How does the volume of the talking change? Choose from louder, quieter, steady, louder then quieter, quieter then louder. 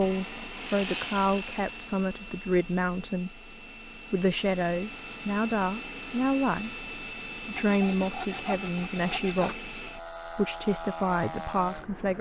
steady.